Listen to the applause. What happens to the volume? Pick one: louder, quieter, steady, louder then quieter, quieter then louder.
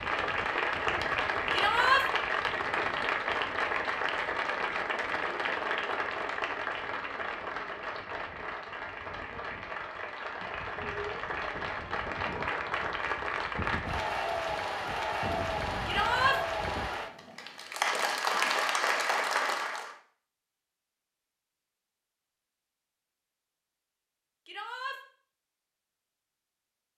quieter then louder.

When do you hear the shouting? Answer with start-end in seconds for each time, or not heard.
1.5-2.0, 15.8-16.4, 24.4-25.0.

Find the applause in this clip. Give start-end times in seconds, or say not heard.
0.0-19.9.